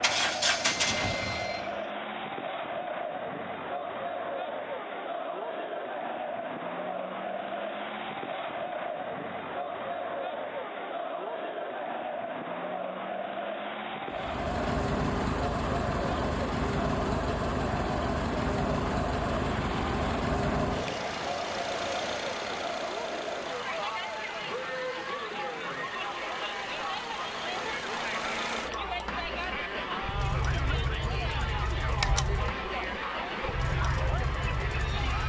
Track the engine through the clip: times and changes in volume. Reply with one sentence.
The engine can be heard briefly from 0.0 to 1.8 s; and from 14.1 to 35.2 s, getting quieter then louder.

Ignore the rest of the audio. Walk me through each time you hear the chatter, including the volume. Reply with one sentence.
You can hear the chatter from 0.0 to 35.2 s, at a steady volume.